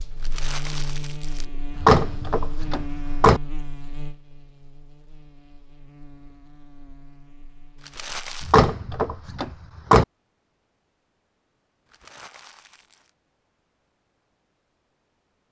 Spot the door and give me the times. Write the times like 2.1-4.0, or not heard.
1.8-3.4, 8.4-10.1.